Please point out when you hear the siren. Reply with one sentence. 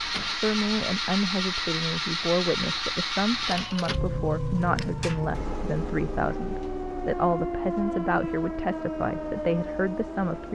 The siren can be heard from 3.5 to 10.5 s.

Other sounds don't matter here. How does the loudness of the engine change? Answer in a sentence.
The volume of the engine goes down.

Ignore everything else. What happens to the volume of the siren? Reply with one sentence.
The loudness of the siren goes up.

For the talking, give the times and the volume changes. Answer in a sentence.
The talking can be heard from 0.4 to 10.5 s, at a steady volume.